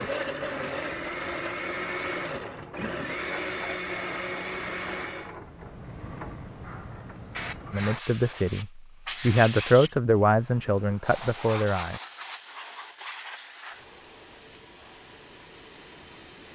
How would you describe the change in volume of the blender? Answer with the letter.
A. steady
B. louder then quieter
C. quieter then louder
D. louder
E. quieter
A.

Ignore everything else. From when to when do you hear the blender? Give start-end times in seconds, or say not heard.
0.0-5.3.